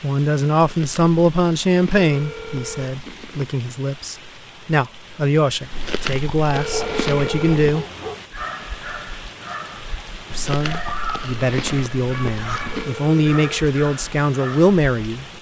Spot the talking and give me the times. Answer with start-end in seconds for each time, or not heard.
0.0-7.8, 10.3-15.2.